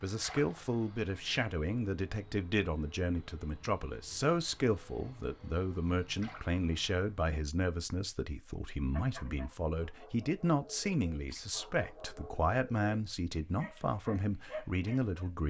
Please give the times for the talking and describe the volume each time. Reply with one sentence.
You can hear the talking from 0.0 to 15.4 s, at a steady volume.